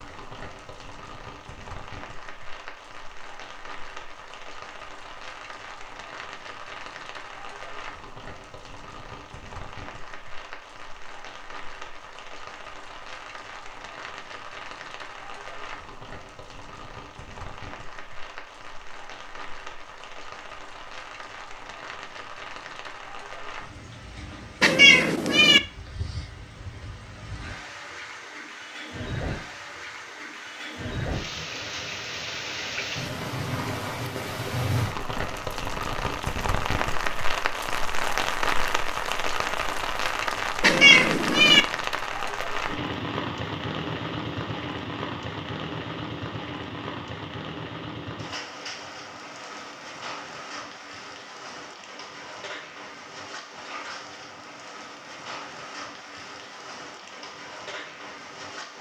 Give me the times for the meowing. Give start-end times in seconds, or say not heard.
24.6-25.6, 40.6-41.6.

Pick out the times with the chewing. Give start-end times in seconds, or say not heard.
not heard.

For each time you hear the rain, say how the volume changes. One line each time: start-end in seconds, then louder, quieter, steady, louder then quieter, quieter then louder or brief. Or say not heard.
0.0-58.7 louder then quieter.